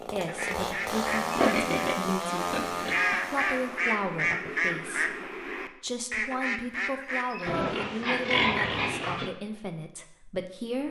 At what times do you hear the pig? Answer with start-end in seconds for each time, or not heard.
1.3-3.0, 7.5-9.3.